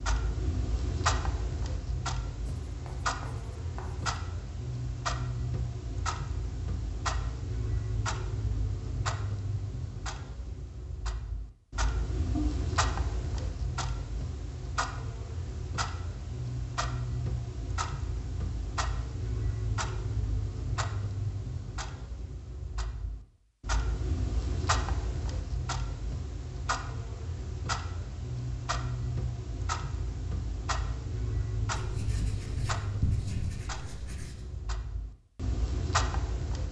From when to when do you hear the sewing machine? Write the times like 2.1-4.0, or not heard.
not heard.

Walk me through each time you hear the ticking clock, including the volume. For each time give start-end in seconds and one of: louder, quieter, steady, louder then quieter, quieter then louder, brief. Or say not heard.
0.0-36.6 steady.